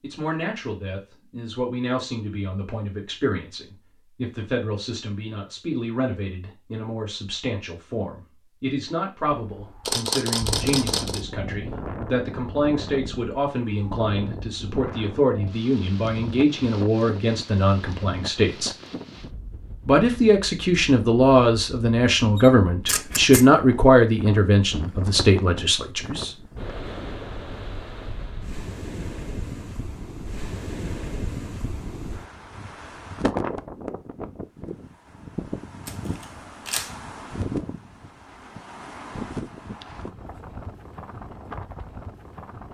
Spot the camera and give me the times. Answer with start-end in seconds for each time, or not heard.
9.8-11.2, 22.4-23.4, 35.9-37.0.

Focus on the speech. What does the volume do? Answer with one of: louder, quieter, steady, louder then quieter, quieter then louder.
louder.